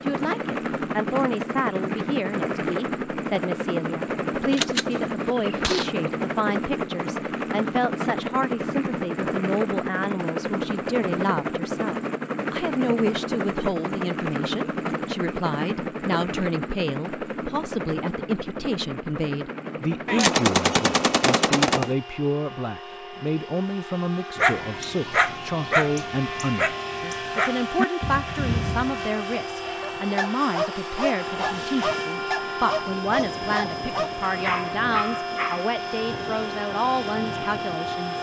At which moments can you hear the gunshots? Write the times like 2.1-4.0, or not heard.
4.5-5.8, 20.1-21.9.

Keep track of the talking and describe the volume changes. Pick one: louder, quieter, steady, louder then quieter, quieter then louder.
steady.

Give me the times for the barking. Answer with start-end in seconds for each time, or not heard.
24.4-35.8.